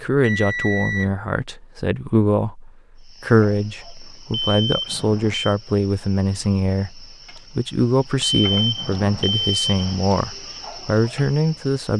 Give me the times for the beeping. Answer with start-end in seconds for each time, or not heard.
0.2-1.1, 4.3-5.5, 8.2-9.9.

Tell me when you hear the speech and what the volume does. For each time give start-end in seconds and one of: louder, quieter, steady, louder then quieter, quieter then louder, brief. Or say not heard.
0.0-11.9 steady.